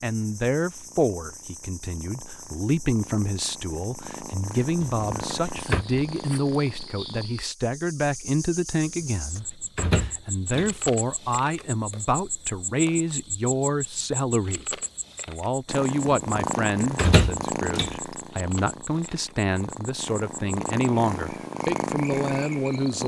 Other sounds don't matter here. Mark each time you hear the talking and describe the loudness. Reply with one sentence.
The talking can be heard from 0.0 to 23.0 s, at a steady volume.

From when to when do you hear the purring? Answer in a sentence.
The purring can be heard from 0.1 to 7.3 s and from 15.7 to 23.0 s.